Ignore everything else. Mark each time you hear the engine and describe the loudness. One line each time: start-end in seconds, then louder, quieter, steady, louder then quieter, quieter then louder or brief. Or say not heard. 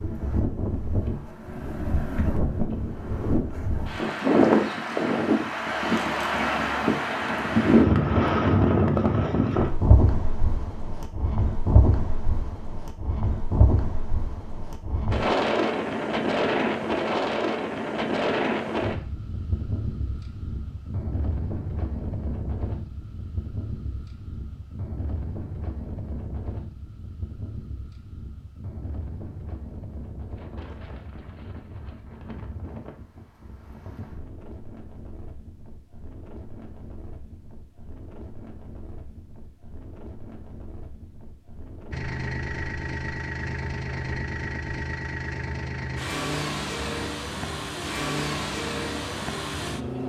41.9-50.0 steady.